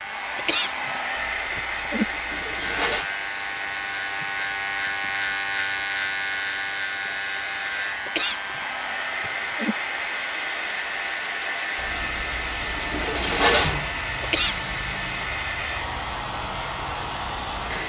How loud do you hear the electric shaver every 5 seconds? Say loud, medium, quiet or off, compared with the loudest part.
loud, loud, medium, medium.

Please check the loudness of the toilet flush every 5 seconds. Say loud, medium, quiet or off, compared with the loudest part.
medium, off, loud, off.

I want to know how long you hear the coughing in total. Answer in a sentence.
The coughing can be heard for 4 seconds in total.